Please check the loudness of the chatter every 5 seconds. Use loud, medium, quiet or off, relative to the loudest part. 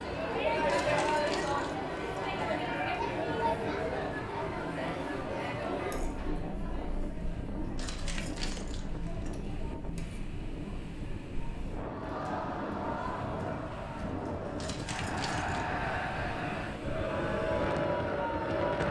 loud, medium, medium, loud.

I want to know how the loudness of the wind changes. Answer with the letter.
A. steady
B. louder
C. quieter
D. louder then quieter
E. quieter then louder
B.